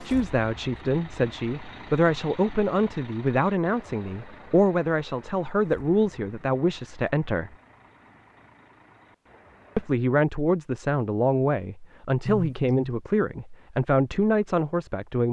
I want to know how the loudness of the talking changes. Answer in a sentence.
The loudness of the talking stays about the same.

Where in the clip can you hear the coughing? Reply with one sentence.
You can hear the coughing from 12.2 to 12.9 s.